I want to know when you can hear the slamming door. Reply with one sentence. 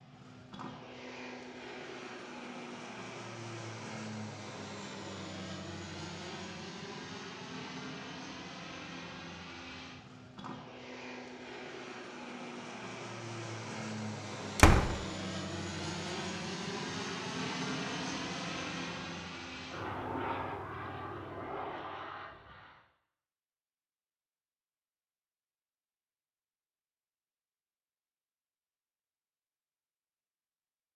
You can hear the slamming door from 14.6 to 15.0 s.